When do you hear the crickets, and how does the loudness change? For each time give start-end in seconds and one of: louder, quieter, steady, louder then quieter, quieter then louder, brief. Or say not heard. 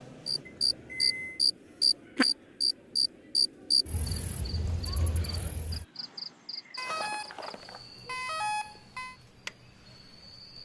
0.0-10.6 quieter.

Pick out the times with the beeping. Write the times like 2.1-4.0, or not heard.
0.5-1.4, 6.8-9.2.